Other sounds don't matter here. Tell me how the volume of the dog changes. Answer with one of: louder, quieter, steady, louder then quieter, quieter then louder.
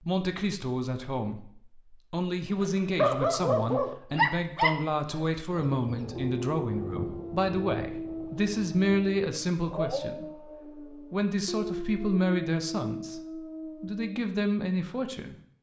quieter.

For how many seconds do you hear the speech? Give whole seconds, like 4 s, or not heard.
14 s.